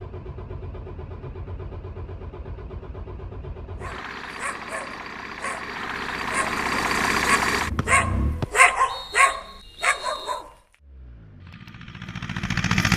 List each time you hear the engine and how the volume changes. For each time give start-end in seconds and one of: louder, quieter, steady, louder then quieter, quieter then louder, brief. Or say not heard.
0.0-8.4 louder
10.8-12.9 brief.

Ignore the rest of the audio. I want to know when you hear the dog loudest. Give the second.
9 s.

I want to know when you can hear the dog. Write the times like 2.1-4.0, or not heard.
3.8-10.6.